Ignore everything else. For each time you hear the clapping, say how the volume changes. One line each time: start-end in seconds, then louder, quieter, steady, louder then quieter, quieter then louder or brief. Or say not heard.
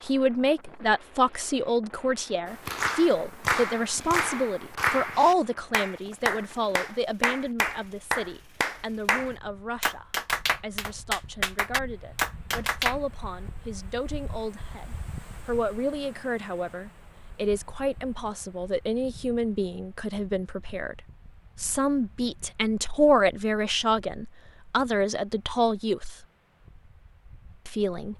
2.5-12.9 steady.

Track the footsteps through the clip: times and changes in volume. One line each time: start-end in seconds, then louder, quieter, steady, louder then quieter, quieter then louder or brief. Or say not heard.
not heard.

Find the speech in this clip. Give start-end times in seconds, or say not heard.
0.1-21.0, 21.6-26.1, 27.6-28.1.